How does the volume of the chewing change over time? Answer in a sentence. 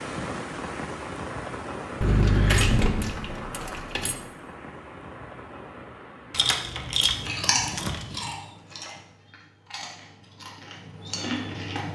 The loudness of the chewing goes down, then up.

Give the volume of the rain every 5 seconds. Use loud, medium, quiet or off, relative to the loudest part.
loud, medium, off.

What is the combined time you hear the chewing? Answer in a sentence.
You can hear the chewing for 5 seconds altogether.